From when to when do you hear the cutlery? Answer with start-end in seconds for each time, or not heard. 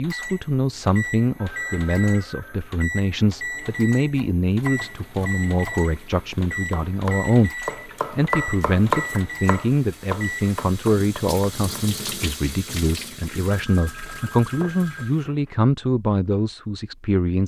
not heard.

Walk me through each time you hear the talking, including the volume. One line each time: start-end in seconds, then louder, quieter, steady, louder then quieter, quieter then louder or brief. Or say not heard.
0.0-17.4 steady.